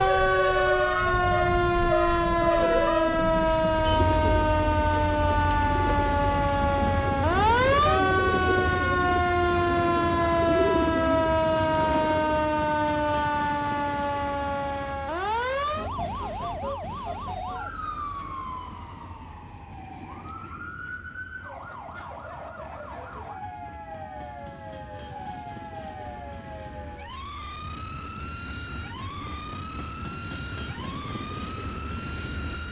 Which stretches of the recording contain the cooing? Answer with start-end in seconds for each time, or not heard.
2.5-12.5.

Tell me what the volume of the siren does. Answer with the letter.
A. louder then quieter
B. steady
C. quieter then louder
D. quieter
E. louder
D.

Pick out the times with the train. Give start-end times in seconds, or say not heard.
0.0-32.6.